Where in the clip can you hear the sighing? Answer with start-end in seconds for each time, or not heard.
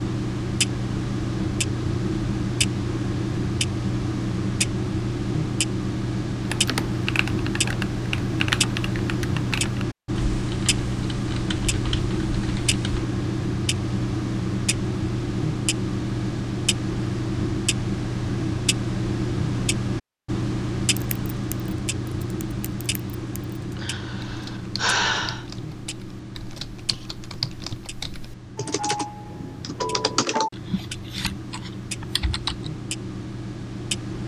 23.8-25.4.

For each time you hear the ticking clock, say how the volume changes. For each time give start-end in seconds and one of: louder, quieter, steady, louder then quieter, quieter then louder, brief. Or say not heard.
0.0-34.2 quieter.